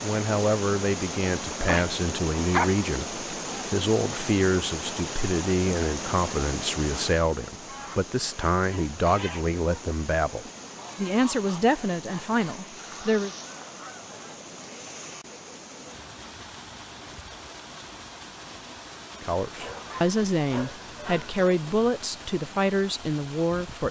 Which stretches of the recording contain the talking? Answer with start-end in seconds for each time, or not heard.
0.0-13.3, 19.2-23.8.